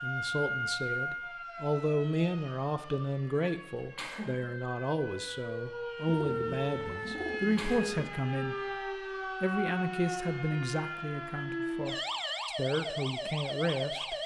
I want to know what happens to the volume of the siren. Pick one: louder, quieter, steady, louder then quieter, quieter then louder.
quieter then louder.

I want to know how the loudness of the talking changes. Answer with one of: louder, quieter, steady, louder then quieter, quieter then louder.
steady.